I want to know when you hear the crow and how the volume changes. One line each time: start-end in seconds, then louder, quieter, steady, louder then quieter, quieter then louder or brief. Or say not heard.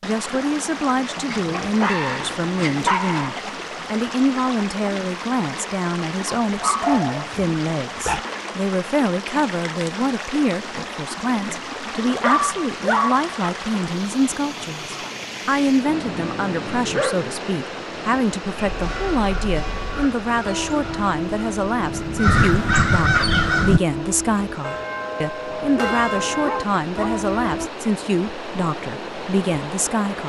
18.6-23.8 louder.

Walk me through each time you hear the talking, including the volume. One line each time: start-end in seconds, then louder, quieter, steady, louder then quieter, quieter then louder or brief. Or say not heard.
0.0-30.2 steady.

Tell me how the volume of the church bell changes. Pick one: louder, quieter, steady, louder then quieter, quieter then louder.
louder.